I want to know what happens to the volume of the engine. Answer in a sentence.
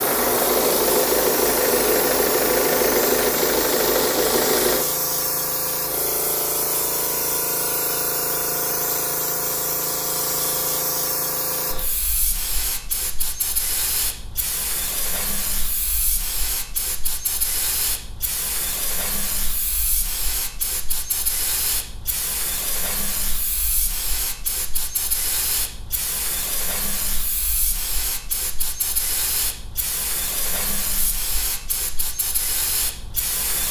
The volume of the engine stays about the same.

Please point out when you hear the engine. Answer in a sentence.
You can hear the engine from 0.0 to 4.8 s.